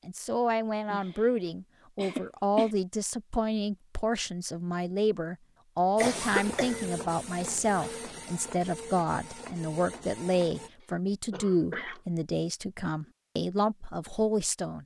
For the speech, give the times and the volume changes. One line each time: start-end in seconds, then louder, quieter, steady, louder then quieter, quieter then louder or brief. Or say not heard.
0.1-14.8 steady.